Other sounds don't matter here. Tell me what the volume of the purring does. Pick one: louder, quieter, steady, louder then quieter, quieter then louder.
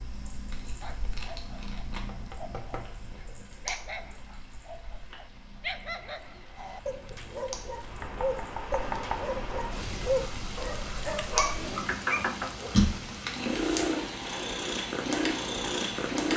louder.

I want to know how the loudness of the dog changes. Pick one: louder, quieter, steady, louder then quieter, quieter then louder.
louder.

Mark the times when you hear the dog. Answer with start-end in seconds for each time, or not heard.
0.8-12.8.